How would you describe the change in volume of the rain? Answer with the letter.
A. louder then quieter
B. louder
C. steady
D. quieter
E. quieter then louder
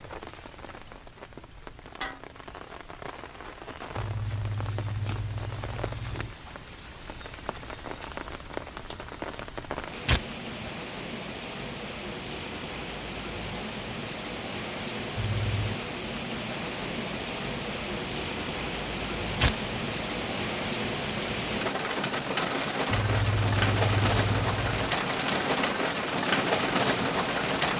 B.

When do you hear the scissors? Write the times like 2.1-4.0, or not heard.
4.0-6.3, 15.2-15.8, 22.9-24.9.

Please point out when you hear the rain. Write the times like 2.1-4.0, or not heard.
0.0-27.7.